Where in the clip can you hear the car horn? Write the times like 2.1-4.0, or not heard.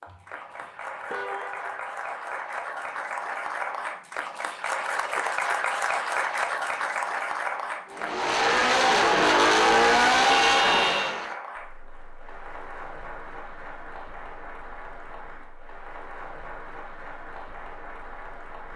0.1-1.8, 10.2-11.2.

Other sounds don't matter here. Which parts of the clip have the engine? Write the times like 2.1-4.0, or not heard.
7.8-11.3.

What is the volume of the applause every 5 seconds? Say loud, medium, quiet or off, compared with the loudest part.
medium, loud, quiet, quiet.